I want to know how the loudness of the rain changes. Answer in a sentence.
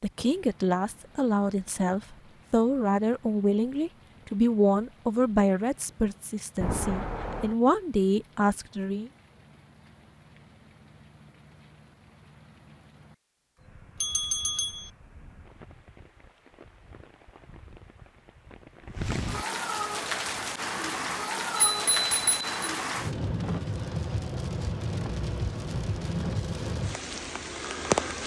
The loudness of the rain goes up.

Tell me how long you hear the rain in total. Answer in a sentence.
The rain can be heard for 28 seconds in total.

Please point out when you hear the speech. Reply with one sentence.
You can hear the speech from 0.0 to 9.1 s.